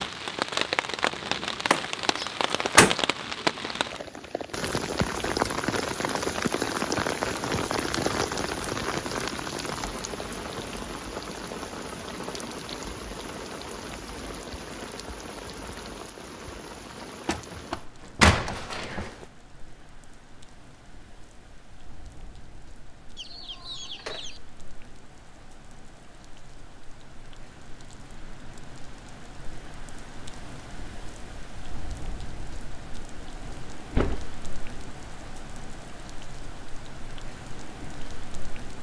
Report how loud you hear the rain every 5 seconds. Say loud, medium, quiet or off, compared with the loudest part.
loud, loud, medium, quiet, quiet, quiet, quiet, quiet.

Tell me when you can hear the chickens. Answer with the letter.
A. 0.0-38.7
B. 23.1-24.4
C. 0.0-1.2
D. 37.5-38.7
B.